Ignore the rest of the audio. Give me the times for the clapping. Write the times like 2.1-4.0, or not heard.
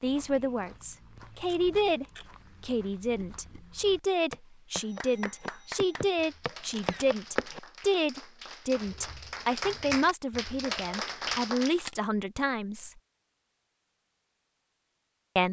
4.8-11.8.